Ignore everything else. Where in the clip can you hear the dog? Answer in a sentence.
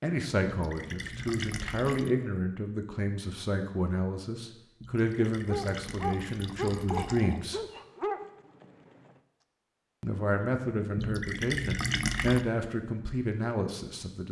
The dog can be heard from 5.2 to 8.7 s.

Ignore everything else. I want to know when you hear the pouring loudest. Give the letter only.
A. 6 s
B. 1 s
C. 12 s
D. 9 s
C.